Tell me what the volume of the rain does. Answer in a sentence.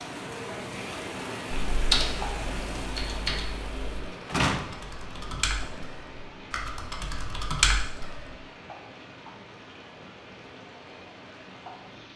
The volume of the rain goes down.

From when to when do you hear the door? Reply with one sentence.
You can hear the door from 4.2 to 6.0 s.